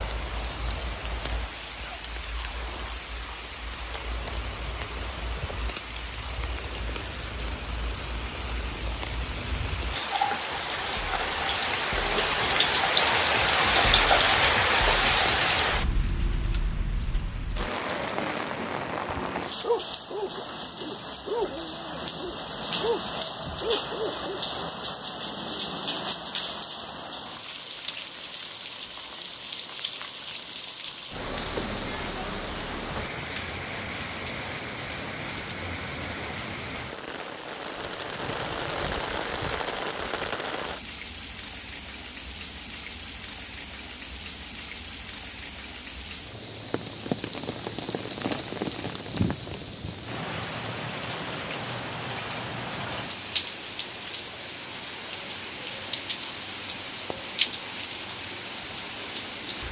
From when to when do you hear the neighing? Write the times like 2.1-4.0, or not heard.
37.8-39.1.